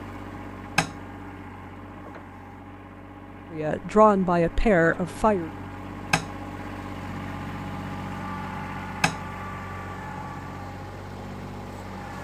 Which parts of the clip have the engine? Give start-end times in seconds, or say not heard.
0.0-12.1.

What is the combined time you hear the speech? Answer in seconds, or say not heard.
2 s.